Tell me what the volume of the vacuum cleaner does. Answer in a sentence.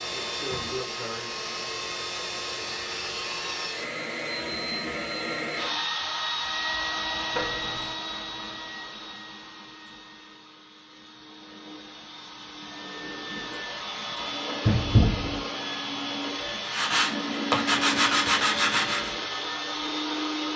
The volume of the vacuum cleaner goes down, then up.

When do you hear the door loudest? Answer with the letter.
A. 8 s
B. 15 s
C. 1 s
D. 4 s
B.